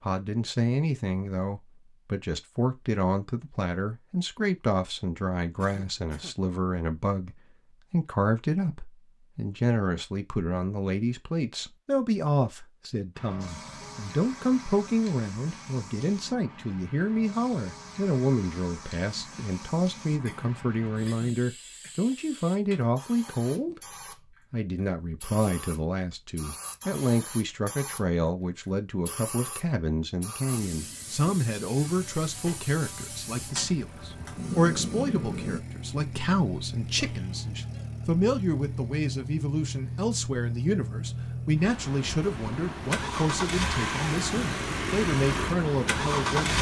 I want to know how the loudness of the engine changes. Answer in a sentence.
The loudness of the engine goes up.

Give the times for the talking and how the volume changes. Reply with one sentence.
The talking can be heard from 0.0 to 46.5 s, at a steady volume.